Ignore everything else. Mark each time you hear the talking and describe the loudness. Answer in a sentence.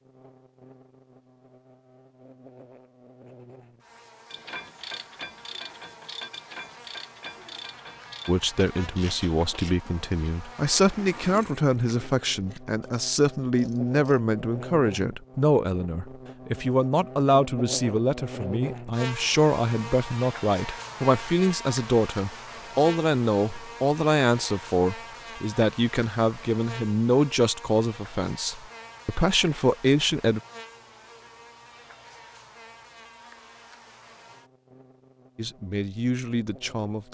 The talking can be heard from 8.2 to 30.4 s, at a steady volume; and briefly from 35.4 to 37.0 s.